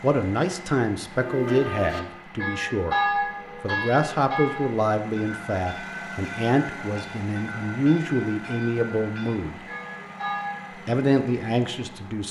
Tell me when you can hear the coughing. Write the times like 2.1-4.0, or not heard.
not heard.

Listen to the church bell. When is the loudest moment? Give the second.
3 s.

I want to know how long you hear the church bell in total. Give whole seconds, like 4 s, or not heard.
10 s.